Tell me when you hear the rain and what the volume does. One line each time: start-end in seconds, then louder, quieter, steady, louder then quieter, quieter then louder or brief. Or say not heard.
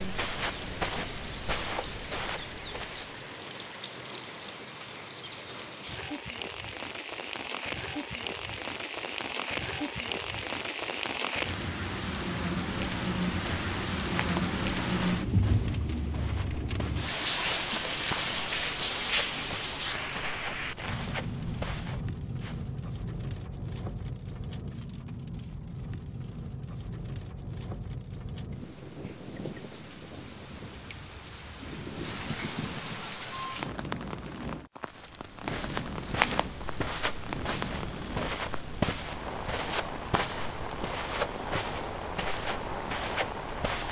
0.0-43.8 louder then quieter.